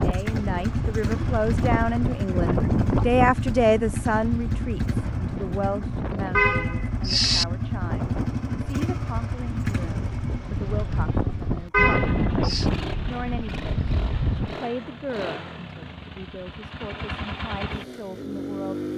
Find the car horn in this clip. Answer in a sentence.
You can hear the car horn from 6.3 to 7.5 s and from 11.7 to 12.7 s.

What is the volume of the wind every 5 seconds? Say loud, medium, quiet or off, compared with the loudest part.
loud, medium, loud, off.